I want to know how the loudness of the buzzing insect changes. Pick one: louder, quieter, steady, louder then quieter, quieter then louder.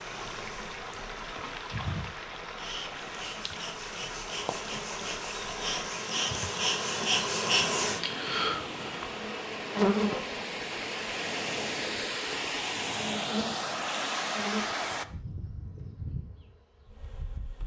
louder then quieter.